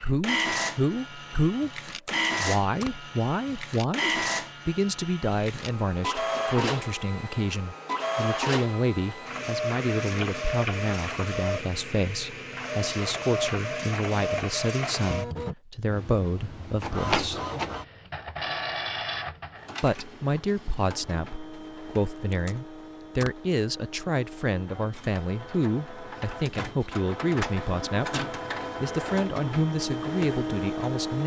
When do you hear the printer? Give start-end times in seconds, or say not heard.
0.0-31.2.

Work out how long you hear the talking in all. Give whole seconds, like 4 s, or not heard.
29 s.